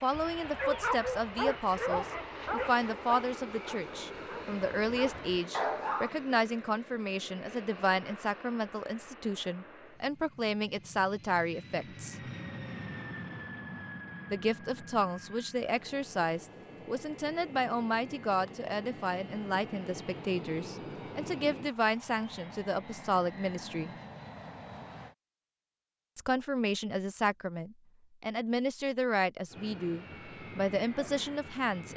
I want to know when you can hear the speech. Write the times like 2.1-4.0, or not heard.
0.0-12.2, 14.3-23.9, 26.1-31.9.